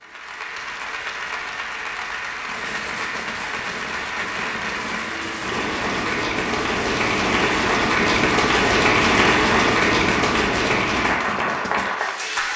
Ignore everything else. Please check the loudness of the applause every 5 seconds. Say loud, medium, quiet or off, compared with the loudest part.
medium, loud, loud.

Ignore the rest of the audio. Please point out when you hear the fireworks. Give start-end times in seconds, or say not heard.
2.4-11.9.